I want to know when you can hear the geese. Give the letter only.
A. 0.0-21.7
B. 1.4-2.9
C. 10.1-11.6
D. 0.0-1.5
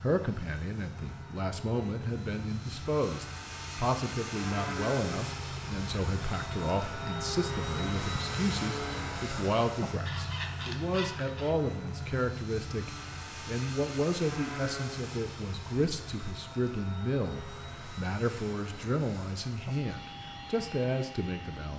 C.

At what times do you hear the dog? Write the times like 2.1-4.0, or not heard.
not heard.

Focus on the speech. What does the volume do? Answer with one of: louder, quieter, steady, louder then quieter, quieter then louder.
steady.